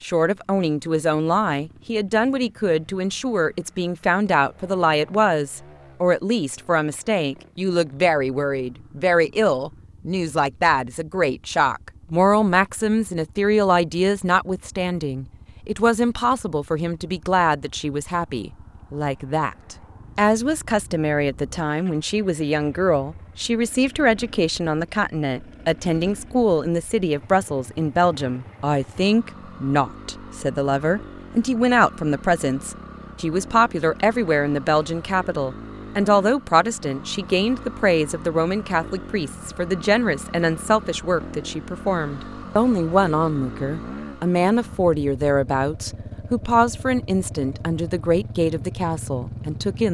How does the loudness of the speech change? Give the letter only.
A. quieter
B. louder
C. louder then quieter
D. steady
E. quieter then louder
D.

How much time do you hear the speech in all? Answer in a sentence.
You can hear the speech for 50 seconds altogether.